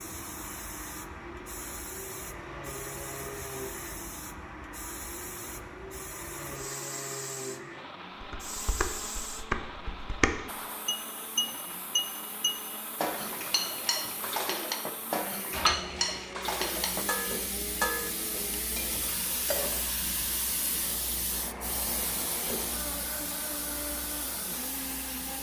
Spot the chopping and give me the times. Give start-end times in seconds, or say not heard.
not heard.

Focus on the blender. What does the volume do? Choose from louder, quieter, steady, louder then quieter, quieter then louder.
steady.